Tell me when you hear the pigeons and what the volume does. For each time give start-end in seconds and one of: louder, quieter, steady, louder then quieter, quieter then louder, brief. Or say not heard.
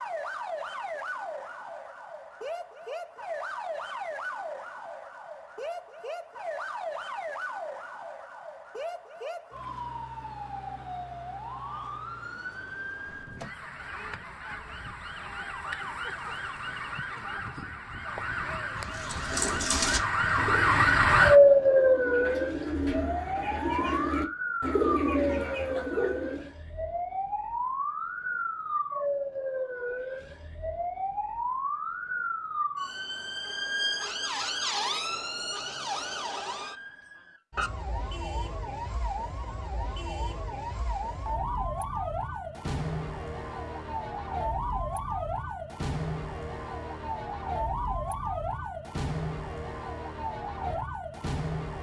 18.8-26.5 quieter then louder.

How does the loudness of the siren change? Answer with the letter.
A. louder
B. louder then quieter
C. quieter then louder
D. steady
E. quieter
B.